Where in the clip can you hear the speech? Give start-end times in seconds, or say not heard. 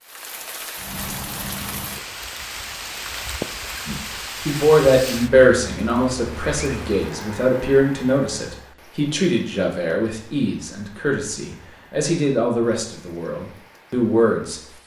3.9-14.6.